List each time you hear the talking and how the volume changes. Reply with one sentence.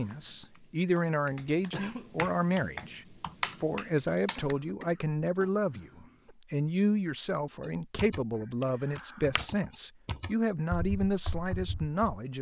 The talking can be heard from 0.0 to 12.3 s, at a steady volume.